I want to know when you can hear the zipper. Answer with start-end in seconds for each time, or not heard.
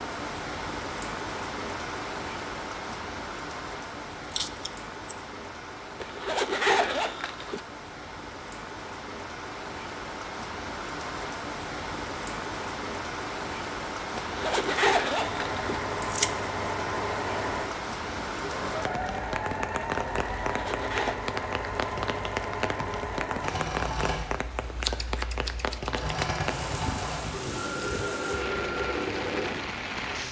6.0-7.6, 14.2-15.7, 20.4-21.2.